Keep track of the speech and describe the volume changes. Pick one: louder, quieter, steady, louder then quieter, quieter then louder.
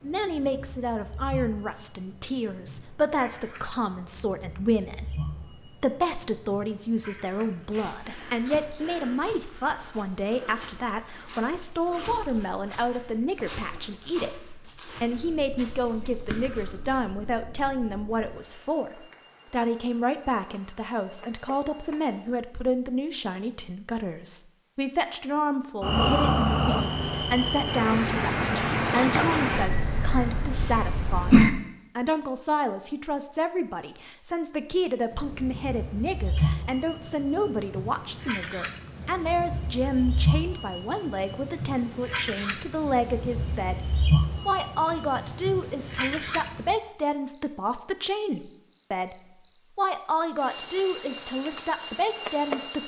steady.